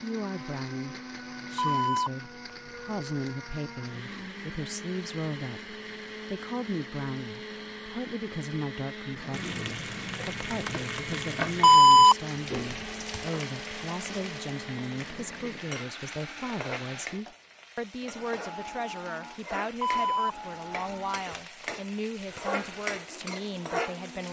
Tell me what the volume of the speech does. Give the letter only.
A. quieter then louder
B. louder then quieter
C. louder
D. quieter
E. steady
E.